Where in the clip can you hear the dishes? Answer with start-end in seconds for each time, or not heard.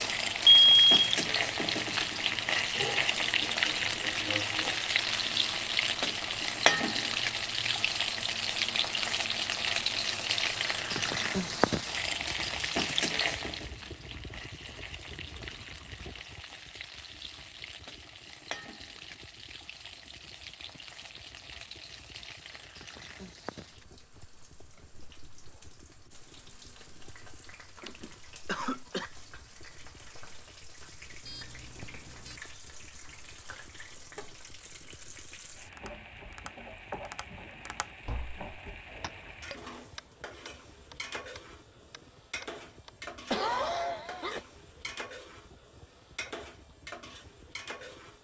not heard.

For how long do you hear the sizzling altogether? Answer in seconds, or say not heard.
48 s.